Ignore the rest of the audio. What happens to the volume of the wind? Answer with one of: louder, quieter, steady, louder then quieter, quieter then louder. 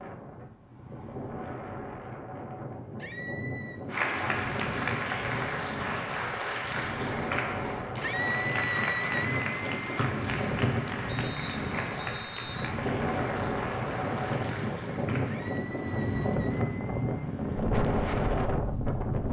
louder.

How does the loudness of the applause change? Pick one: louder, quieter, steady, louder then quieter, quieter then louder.
quieter.